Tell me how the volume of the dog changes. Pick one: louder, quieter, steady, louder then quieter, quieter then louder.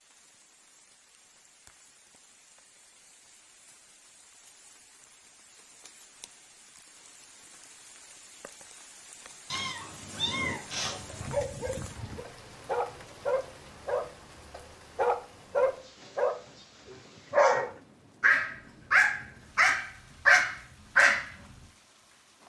louder.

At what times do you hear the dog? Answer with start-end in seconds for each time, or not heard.
10.8-21.3.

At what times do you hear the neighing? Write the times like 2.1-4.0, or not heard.
not heard.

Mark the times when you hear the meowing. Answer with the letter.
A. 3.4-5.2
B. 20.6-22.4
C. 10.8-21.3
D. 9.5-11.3
D.